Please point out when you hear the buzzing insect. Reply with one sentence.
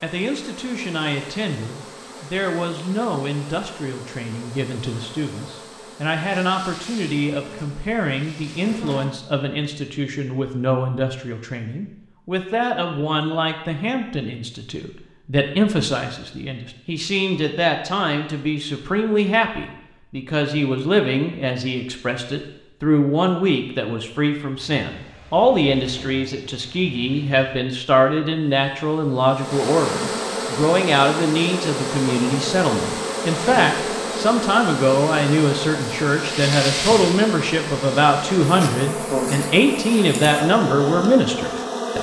You can hear the buzzing insect from 0.0 to 9.2 s and from 29.1 to 41.9 s.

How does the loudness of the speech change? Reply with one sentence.
The loudness of the speech goes up.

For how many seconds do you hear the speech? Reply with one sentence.
You can hear the speech for 42 seconds altogether.